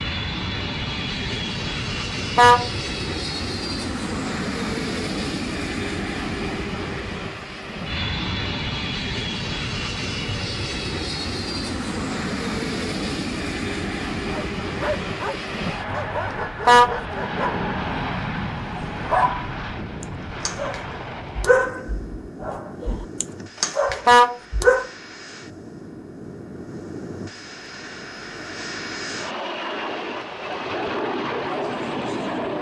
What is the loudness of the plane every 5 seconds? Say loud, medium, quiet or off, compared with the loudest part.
loud, loud, loud, loud, medium, medium, loud.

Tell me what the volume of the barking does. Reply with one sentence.
The volume of the barking goes up.